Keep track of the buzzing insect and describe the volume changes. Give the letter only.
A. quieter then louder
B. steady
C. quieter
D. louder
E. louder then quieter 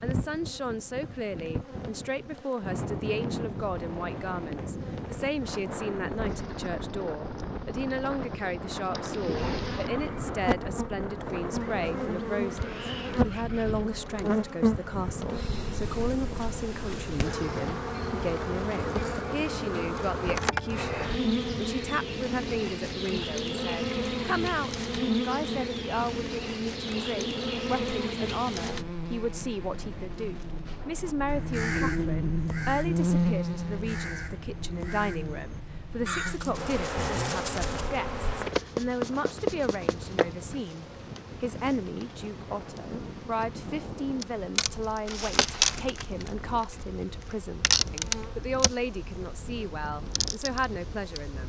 D.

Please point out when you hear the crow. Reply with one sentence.
The crow can be heard from 31.0 to 37.9 s.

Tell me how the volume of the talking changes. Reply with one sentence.
The loudness of the talking stays about the same.